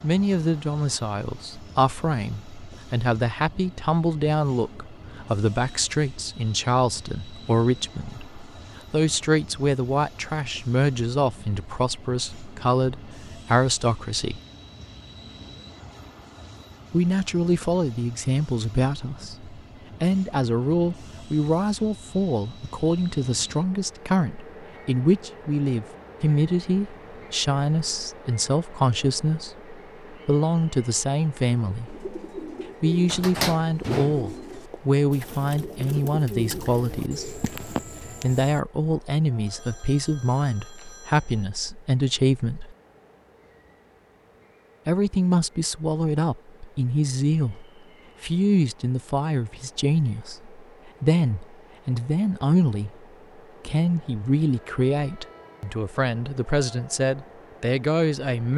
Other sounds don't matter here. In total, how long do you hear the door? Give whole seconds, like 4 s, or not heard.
2 s.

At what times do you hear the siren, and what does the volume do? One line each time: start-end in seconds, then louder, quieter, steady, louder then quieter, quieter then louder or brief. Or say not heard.
not heard.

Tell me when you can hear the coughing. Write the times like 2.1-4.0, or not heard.
not heard.